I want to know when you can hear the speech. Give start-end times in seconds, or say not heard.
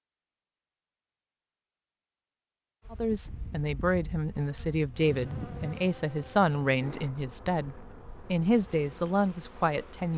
2.9-10.1.